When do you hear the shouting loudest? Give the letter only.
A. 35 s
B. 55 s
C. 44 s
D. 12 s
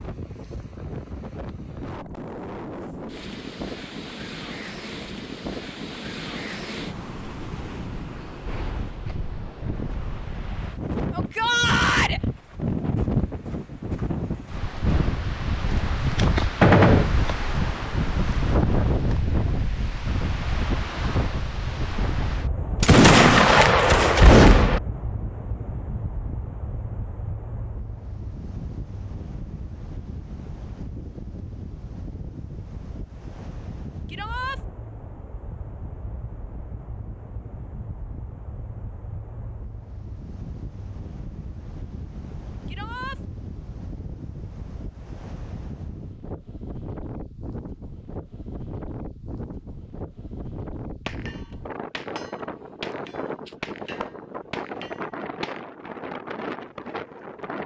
D.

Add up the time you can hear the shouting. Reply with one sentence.
The shouting can be heard for 2 seconds in total.